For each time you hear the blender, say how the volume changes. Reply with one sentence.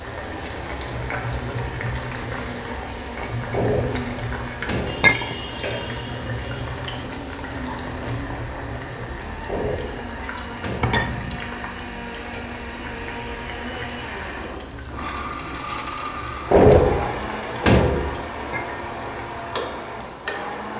The blender can be heard from 0.0 to 20.7 s, getting louder.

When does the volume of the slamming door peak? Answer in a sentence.
The loudest moment of the slamming door is at 17 seconds.